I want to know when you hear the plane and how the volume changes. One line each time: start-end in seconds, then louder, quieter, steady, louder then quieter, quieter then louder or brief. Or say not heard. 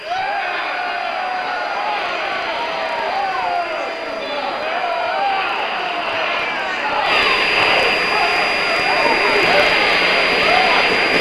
0.0-11.1 louder.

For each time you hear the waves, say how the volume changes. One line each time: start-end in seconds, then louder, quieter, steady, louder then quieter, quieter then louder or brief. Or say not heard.
not heard.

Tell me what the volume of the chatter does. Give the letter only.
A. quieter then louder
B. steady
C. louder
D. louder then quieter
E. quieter
B.